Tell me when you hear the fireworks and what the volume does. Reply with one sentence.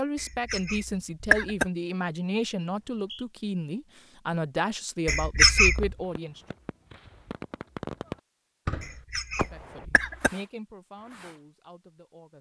The fireworks can be heard from 5.7 to 11.4 s, getting louder then quieter.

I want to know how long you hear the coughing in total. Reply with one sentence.
You can hear the coughing for 4 seconds altogether.